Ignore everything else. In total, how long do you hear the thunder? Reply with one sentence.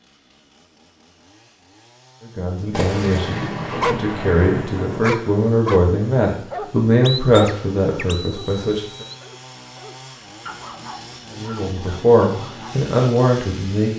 The thunder can be heard for 3 seconds in total.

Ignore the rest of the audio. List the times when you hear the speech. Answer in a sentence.
You can hear the speech from 2.2 to 9.1 s and from 11.3 to 13.9 s.